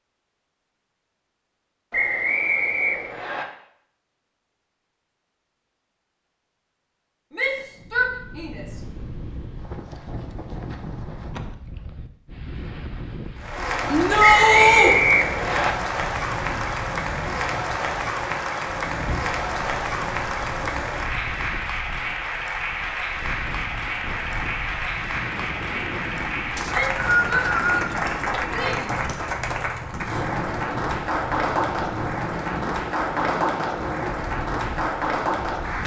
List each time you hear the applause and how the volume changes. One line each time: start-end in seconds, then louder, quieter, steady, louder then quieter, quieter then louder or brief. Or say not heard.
13.3-35.8 steady.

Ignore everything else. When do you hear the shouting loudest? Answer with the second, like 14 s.
14 s.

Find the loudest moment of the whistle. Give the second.
15 s.